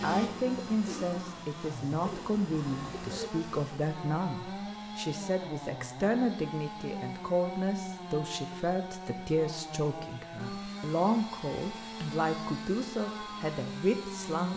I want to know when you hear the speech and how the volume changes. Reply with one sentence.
You can hear the speech from 0.0 to 14.5 s, at a steady volume.